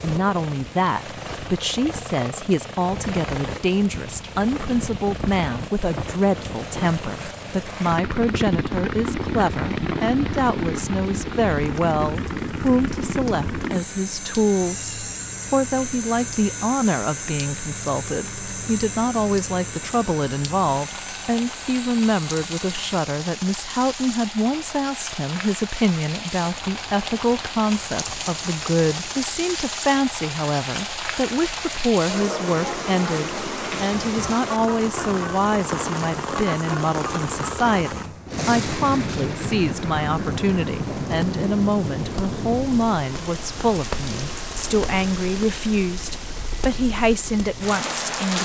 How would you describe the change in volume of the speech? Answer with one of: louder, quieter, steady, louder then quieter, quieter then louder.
steady.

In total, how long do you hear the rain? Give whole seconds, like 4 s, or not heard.
48 s.